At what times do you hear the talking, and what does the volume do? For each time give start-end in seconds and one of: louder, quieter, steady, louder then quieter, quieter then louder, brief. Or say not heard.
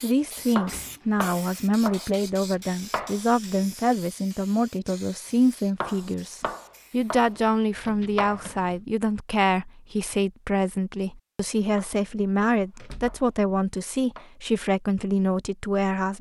0.0-16.1 steady.